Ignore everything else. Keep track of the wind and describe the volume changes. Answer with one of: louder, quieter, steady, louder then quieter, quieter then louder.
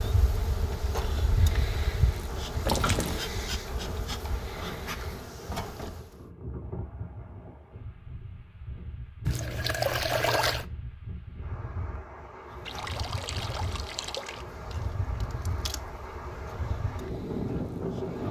louder.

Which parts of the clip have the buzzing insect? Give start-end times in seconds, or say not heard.
0.0-6.1, 12.5-18.2.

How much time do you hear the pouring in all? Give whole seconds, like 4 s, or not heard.
4 s.